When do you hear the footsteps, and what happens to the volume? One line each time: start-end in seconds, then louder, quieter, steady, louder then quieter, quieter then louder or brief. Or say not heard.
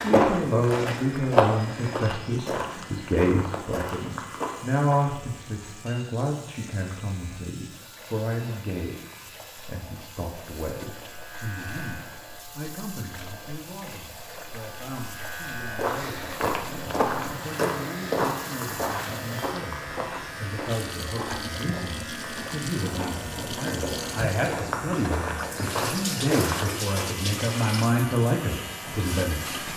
0.0-5.1 louder then quieter
15.7-27.1 quieter then louder.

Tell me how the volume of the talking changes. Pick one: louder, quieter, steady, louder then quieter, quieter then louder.
quieter then louder.